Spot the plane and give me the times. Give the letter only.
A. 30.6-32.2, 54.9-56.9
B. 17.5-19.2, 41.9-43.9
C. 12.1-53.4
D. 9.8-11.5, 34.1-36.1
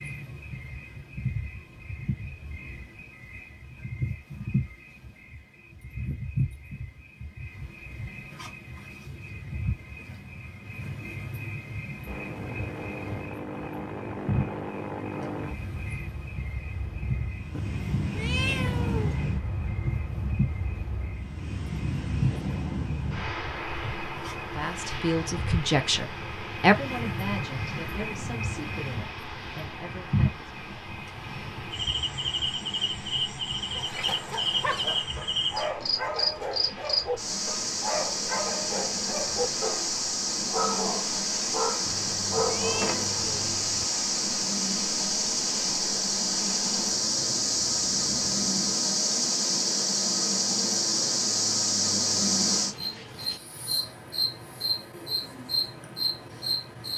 C.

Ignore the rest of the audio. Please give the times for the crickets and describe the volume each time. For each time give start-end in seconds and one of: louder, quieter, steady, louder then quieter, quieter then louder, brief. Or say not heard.
0.0-56.9 louder.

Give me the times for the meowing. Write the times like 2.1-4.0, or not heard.
17.5-19.2, 41.9-43.9.